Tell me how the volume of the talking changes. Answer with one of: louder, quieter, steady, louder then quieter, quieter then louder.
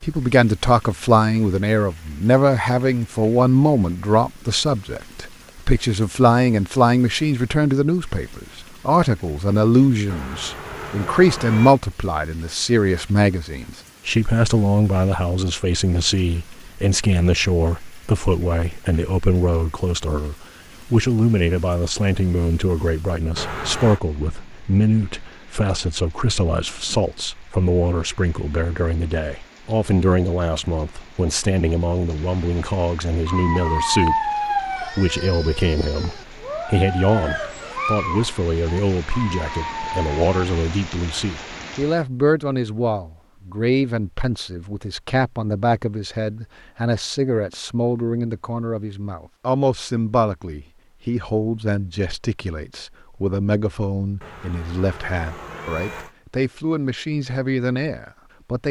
quieter.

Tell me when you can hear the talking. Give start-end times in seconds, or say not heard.
0.0-58.6.